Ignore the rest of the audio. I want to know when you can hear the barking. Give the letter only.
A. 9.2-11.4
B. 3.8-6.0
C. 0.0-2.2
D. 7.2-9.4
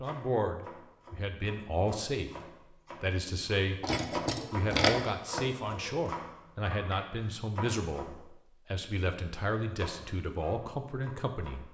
B.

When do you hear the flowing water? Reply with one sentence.
The flowing water can't be heard in this clip.